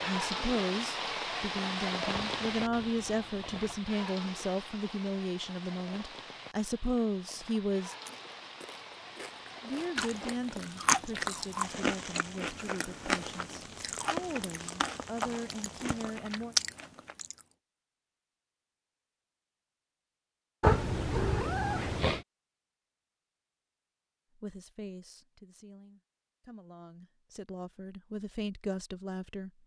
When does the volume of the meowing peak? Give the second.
21 s.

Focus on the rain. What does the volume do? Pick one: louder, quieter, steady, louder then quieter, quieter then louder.
quieter.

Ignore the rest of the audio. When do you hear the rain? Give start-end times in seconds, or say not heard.
0.0-16.2.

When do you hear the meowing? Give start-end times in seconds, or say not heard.
2.4-3.9, 20.6-22.2.